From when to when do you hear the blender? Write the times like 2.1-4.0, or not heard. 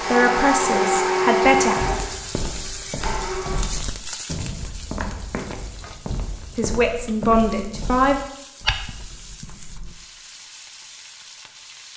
0.0-3.7.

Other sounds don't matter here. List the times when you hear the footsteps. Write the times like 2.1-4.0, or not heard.
1.6-9.9.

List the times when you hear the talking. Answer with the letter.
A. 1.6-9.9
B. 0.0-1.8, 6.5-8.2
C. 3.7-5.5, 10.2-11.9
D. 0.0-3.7
B.